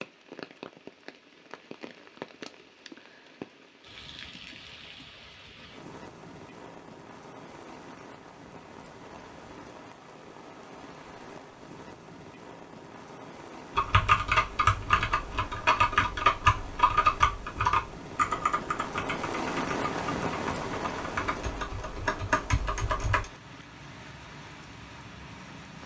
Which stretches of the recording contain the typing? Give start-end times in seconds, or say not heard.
13.8-23.2.